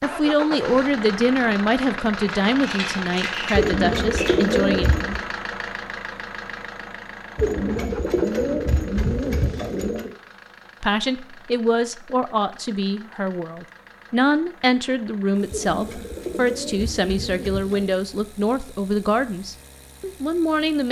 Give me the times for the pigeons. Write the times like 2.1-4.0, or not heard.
3.5-5.2, 7.3-10.1, 15.5-18.0.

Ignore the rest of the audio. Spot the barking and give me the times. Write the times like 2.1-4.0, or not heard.
not heard.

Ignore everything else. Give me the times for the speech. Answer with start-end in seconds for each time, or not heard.
0.0-4.8, 10.8-20.8.